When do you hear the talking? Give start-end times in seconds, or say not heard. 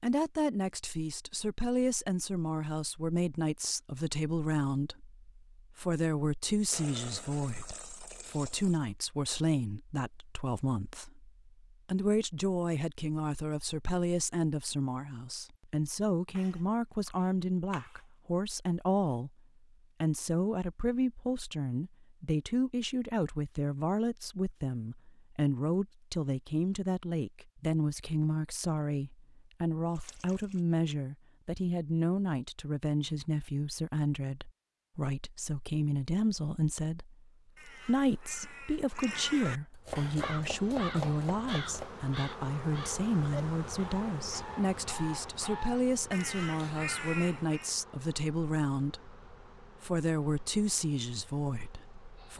0.0-19.3, 20.0-52.3.